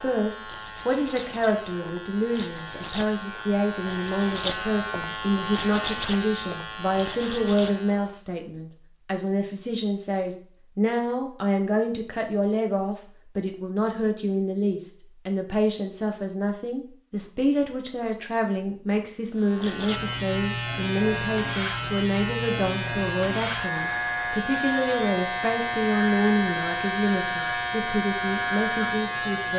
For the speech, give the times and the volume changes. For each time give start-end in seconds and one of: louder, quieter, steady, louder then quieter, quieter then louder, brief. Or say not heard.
0.0-29.5 steady.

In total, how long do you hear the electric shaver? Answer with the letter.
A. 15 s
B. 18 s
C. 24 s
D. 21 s
B.